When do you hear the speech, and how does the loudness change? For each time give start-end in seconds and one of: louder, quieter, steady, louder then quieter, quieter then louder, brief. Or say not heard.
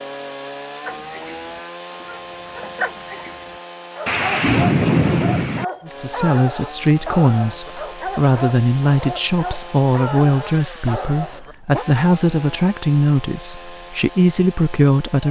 5.8-15.2 steady.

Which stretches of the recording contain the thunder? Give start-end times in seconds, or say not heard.
4.0-5.7.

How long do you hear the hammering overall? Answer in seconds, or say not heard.
not heard.